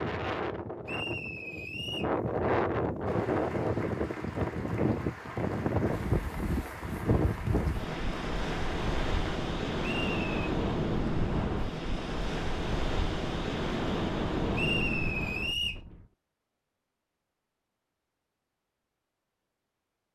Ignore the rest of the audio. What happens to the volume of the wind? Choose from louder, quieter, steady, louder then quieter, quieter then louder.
steady.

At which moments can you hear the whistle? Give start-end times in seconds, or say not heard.
0.8-2.1, 9.8-10.3, 14.5-15.8.